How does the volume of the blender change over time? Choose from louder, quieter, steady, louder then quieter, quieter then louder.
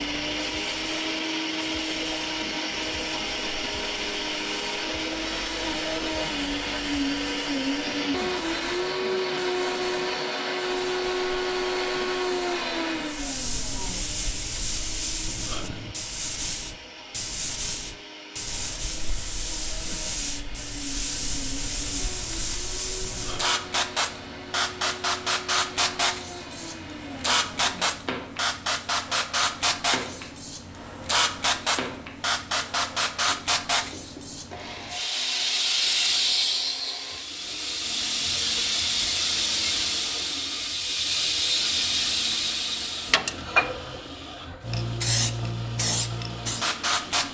quieter.